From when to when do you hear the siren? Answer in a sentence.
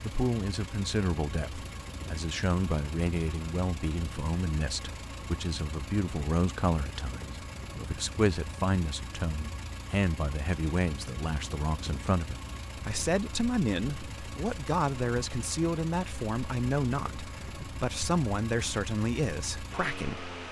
You can't hear the siren here.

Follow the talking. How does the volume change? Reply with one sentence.
The volume of the talking stays about the same.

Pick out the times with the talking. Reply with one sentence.
The talking can be heard from 0.0 to 20.4 s.